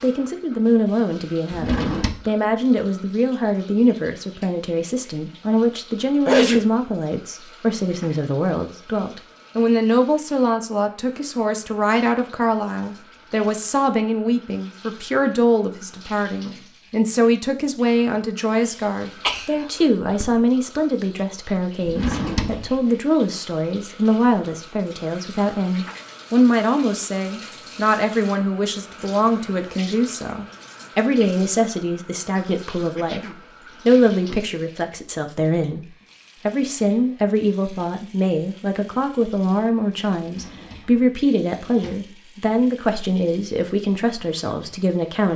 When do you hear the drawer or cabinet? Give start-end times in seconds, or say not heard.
1.5-2.1, 21.9-22.9, 40.1-42.0.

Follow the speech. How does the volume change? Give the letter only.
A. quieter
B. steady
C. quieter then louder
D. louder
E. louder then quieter
B.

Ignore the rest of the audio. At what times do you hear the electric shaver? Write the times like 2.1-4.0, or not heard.
not heard.